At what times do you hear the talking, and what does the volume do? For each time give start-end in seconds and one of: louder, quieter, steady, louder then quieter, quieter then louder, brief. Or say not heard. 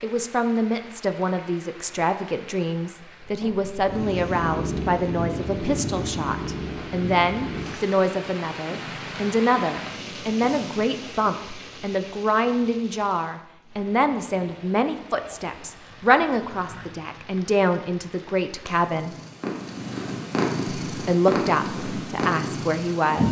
0.0-19.1 steady
20.9-23.2 brief.